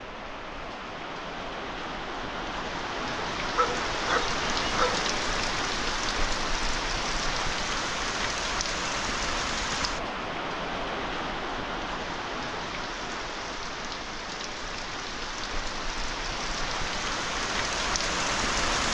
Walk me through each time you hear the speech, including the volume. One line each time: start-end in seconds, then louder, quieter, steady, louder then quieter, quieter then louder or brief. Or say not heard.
not heard.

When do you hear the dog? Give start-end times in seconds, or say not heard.
3.5-5.0.